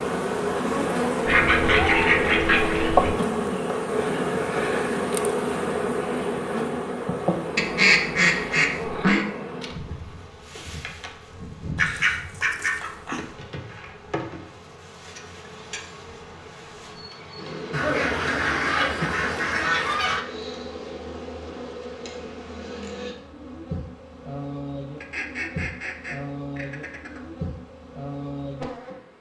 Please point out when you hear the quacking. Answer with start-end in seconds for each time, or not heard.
1.2-3.1, 7.5-9.2, 11.8-13.2, 17.7-20.2, 25.0-27.2.